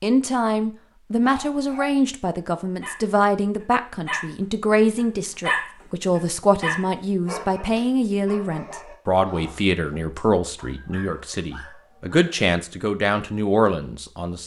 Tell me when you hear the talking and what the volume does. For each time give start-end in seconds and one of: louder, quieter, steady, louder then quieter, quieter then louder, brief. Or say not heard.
0.0-14.4 steady.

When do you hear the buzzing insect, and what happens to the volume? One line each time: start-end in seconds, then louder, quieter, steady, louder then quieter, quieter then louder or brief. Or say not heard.
not heard.